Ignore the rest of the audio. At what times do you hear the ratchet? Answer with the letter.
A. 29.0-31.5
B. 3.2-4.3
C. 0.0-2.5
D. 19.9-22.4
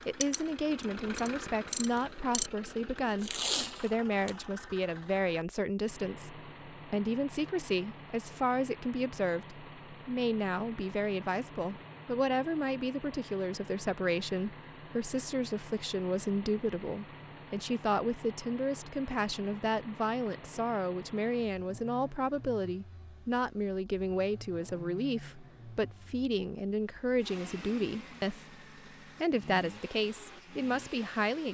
C.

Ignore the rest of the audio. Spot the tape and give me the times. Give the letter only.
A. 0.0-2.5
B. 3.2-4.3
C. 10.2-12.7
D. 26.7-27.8
B.